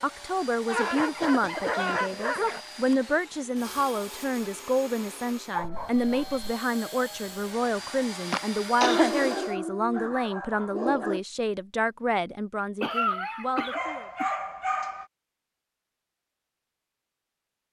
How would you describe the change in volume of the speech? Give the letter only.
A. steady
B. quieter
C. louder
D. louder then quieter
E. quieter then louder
A.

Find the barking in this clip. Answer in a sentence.
The barking can be heard from 0.7 to 2.6 s, from 5.5 to 6.5 s, from 8.8 to 11.2 s and from 13.6 to 15.1 s.